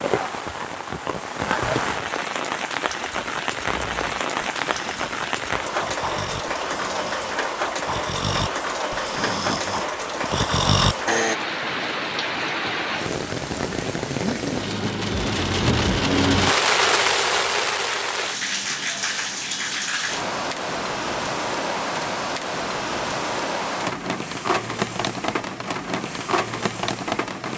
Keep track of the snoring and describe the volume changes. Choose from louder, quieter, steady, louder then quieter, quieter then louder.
louder.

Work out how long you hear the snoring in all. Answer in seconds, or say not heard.
8 s.